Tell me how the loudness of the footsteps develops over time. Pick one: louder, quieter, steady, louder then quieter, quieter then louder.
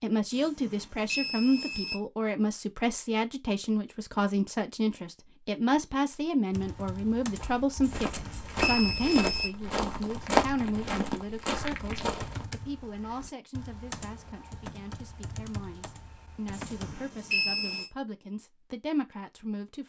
louder then quieter.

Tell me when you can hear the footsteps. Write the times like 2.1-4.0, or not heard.
7.3-12.5.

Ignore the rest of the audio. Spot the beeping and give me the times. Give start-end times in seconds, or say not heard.
0.3-1.9, 7.8-9.5, 16.5-17.9.